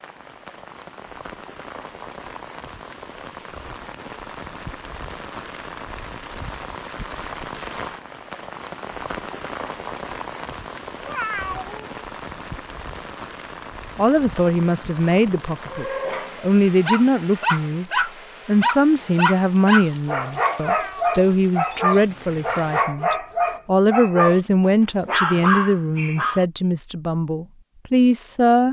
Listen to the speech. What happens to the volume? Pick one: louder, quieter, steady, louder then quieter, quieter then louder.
steady.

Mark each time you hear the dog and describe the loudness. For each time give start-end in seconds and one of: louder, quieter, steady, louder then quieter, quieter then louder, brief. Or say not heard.
15.7-26.4 steady.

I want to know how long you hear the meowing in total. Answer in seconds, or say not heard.
2 s.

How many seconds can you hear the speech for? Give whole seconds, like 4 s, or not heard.
15 s.